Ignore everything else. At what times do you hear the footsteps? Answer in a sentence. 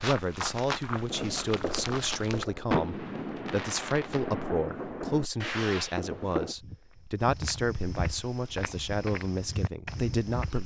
The footsteps can be heard from 0.0 to 2.5 s and from 6.4 to 10.6 s.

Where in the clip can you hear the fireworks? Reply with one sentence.
The fireworks can be heard from 1.1 to 6.5 s.